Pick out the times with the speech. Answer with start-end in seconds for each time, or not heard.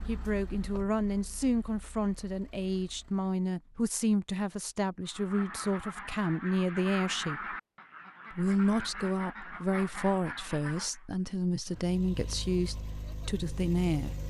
0.1-7.5, 8.3-14.2.